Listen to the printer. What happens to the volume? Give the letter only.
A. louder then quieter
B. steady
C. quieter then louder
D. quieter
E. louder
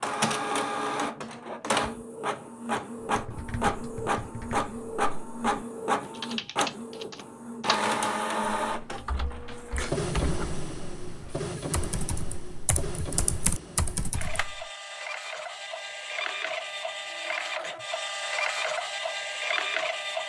C.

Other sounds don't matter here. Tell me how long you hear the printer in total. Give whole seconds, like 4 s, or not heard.
20 s.